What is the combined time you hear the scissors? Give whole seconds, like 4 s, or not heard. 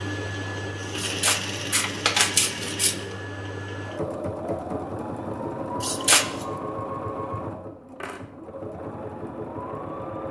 3 s.